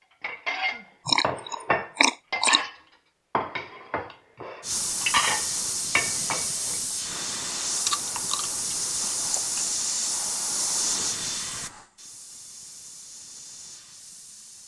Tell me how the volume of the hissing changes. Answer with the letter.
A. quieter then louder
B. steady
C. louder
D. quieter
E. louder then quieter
D.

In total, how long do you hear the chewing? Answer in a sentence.
The chewing can be heard for 3 seconds in total.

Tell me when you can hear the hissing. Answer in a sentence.
The hissing can be heard from 4.6 to 14.6 s.